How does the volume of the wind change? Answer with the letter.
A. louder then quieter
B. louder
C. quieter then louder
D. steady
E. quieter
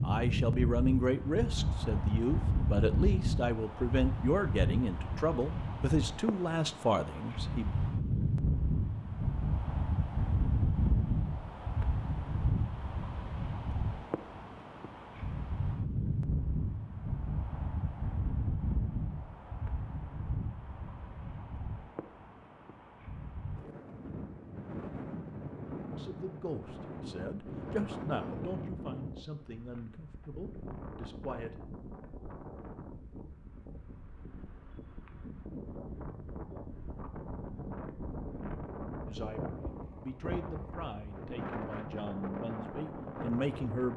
E.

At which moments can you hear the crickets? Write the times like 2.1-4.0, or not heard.
not heard.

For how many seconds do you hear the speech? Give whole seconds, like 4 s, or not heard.
18 s.